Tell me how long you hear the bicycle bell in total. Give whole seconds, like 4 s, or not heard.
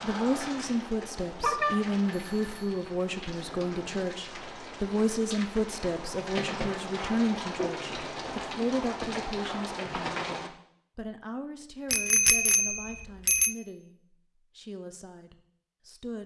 3 s.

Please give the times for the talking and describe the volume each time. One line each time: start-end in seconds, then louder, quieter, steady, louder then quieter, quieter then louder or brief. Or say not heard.
0.0-16.2 quieter.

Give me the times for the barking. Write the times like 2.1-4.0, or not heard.
not heard.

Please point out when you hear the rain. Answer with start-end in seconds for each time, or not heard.
0.0-10.5.